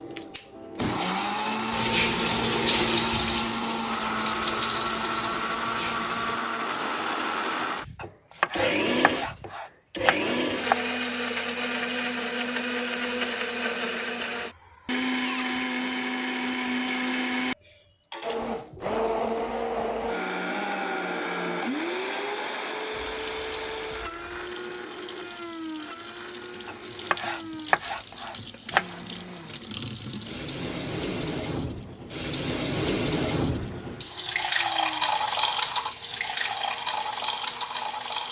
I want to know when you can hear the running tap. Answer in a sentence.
You can hear the running tap from 1.7 to 6.4 s and from 22.9 to 38.2 s.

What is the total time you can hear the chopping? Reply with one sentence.
You can hear the chopping for 5 seconds altogether.